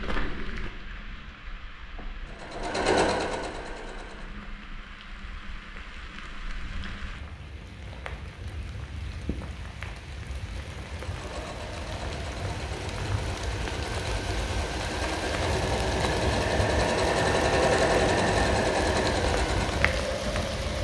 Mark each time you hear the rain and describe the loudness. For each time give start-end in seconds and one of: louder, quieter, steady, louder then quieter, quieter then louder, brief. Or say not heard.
0.0-20.7 louder.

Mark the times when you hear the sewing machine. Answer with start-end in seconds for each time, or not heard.
2.2-4.3, 10.8-20.7.